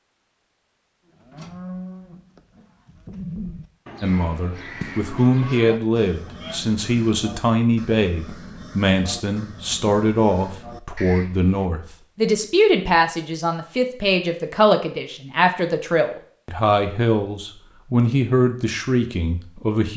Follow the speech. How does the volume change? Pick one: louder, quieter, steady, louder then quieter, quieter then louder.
steady.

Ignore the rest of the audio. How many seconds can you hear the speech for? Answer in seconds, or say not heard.
16 s.